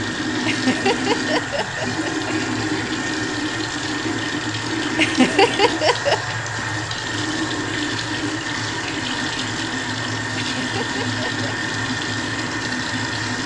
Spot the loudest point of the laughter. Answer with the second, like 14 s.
5 s.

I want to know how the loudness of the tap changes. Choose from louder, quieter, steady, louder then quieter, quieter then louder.
steady.